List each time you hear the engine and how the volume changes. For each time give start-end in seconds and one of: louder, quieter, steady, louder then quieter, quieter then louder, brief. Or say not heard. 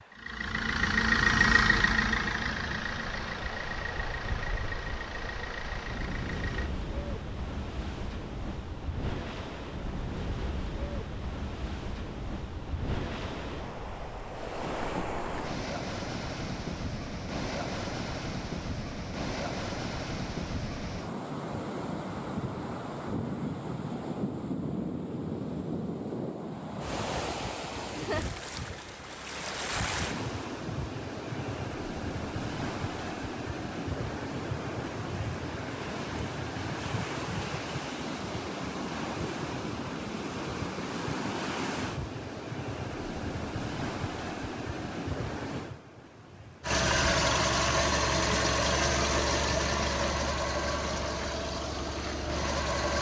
0.0-6.7 quieter
46.6-52.9 quieter.